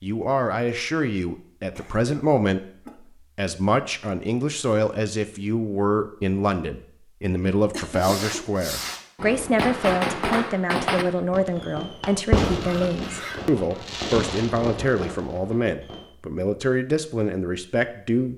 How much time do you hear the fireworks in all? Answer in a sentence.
You can hear the fireworks for 9 seconds altogether.